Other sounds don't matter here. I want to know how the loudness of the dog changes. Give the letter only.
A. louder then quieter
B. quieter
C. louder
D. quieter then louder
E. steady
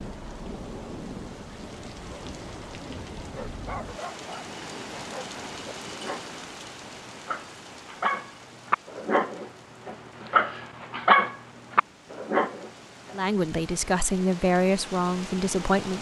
C.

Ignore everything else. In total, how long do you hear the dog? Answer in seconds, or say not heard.
10 s.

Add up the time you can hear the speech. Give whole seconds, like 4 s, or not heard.
3 s.